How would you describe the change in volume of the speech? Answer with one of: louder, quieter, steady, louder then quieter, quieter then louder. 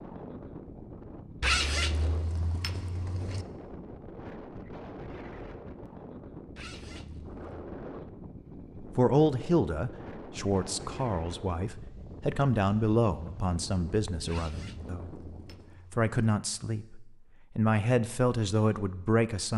quieter then louder.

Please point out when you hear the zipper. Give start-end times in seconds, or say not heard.
1.4-3.5, 6.5-7.5, 14.2-16.1.